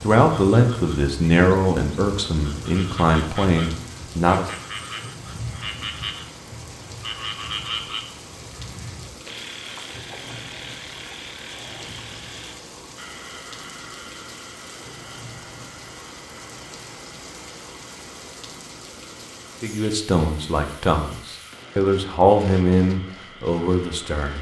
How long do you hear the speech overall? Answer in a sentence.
You can hear the speech for 9 seconds altogether.